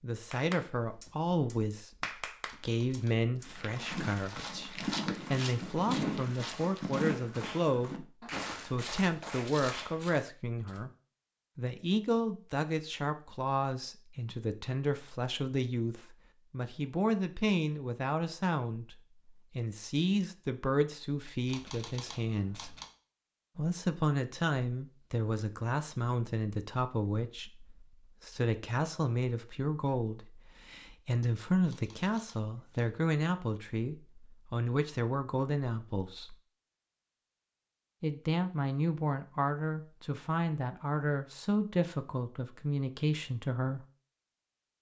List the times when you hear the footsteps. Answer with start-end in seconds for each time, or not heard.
3.5-10.2.